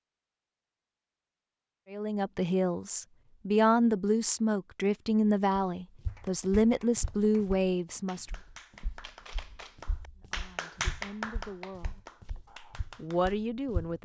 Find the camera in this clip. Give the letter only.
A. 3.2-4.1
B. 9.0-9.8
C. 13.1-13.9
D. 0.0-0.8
B.